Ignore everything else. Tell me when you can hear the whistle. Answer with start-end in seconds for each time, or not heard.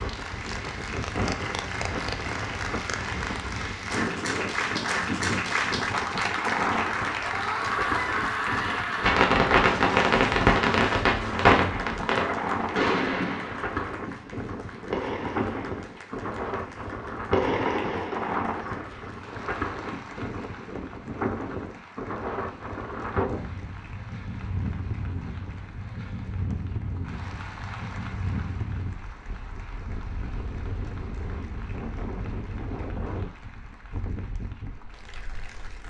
not heard.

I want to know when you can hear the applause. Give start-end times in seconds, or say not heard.
0.0-35.8.